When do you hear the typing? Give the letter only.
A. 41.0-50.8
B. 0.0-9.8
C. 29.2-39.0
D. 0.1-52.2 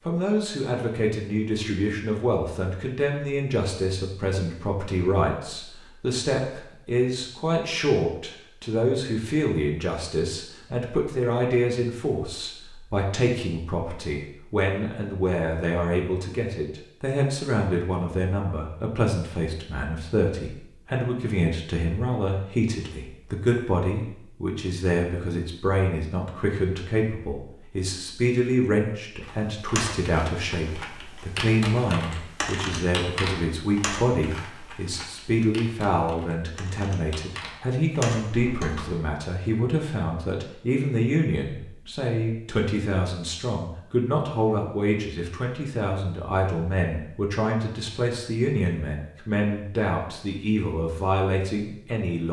C.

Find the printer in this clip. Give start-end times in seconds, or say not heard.
not heard.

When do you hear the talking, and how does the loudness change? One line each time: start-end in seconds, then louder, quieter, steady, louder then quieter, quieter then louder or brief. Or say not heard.
0.1-52.2 steady.